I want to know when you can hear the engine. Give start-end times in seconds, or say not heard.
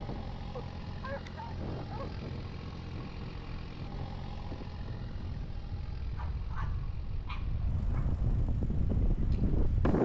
0.0-9.8.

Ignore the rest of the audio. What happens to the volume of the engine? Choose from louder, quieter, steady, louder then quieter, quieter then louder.
quieter.